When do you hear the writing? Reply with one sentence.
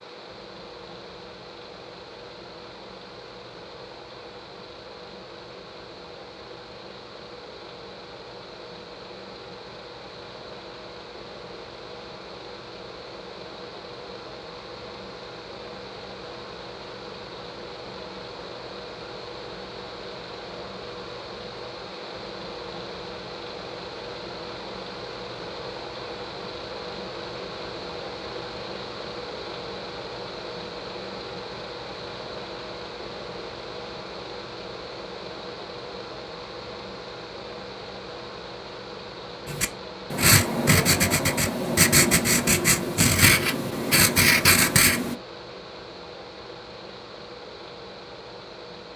The writing can be heard from 39.5 to 45.1 s.